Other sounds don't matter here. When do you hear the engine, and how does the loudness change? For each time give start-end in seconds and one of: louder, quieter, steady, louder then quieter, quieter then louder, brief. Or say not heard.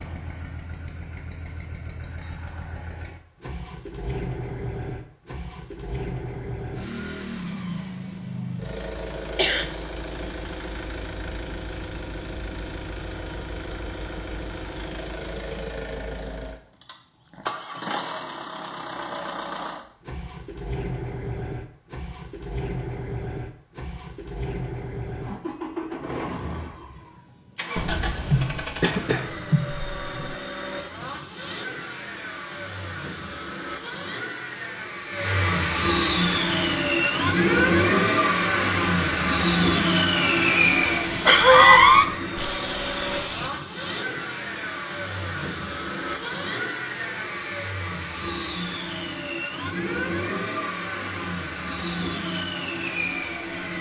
0.0-53.7 louder then quieter.